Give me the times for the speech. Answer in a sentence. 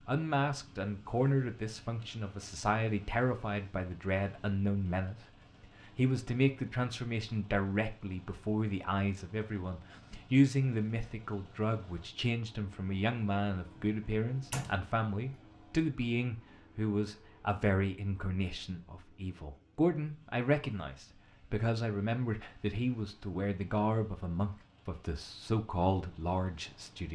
You can hear the speech from 0.1 to 5.2 s and from 5.8 to 27.1 s.